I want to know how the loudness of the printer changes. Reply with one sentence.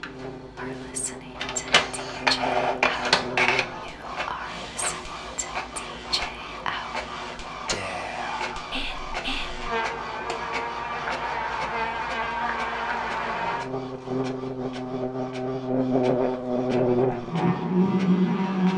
The loudness of the printer goes down.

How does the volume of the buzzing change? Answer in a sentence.
The volume of the buzzing goes down, then up.